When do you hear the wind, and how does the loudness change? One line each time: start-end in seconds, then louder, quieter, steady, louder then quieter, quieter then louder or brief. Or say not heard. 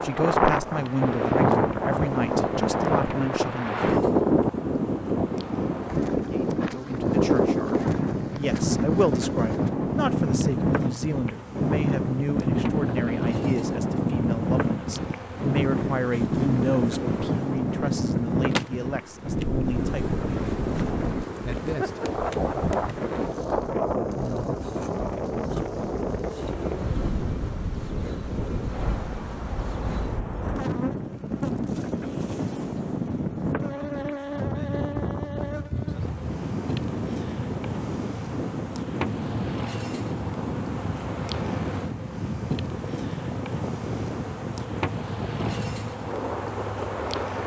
0.0-47.4 quieter.